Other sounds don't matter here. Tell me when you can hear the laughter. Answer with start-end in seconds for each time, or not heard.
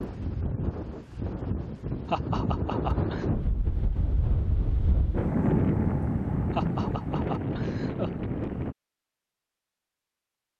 2.0-3.2, 6.5-8.1.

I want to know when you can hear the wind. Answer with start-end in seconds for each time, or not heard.
0.0-8.8.